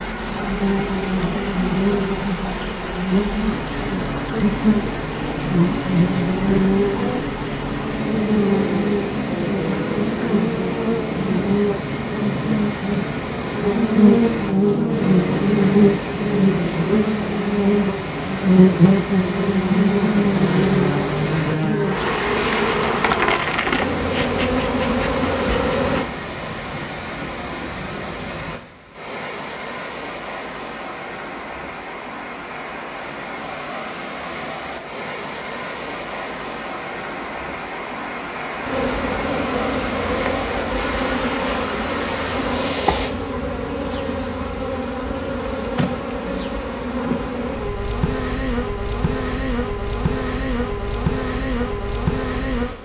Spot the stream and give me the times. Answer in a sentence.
You can hear the stream from 0.0 to 43.1 s.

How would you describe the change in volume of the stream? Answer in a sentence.
The volume of the stream stays about the same.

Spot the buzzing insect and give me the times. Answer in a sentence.
You can hear the buzzing insect from 0.0 to 26.1 s and from 38.6 to 52.8 s.